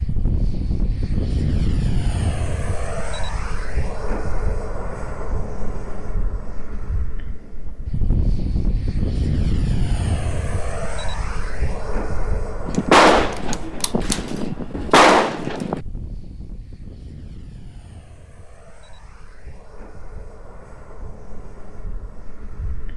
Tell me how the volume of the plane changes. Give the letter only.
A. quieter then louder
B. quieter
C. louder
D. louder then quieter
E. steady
B.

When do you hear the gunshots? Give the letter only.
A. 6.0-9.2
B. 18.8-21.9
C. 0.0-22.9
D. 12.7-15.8
D.